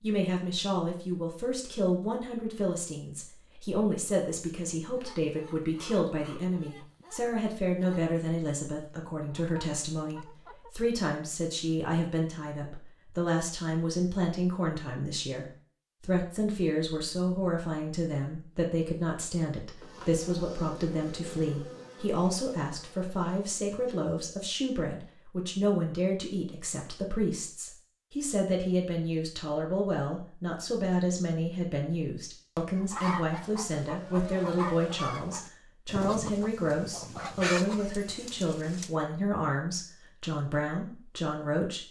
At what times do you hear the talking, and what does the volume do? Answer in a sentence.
The talking can be heard from 0.0 to 41.8 s, at a steady volume.